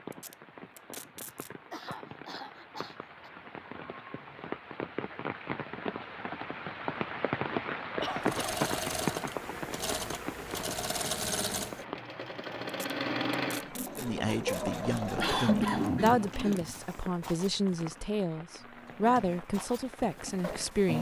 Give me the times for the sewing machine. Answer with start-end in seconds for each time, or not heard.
8.2-20.9.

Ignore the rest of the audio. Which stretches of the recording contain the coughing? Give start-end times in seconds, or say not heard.
1.1-3.3, 8.0-8.4, 14.9-16.8.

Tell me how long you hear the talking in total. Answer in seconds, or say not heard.
7 s.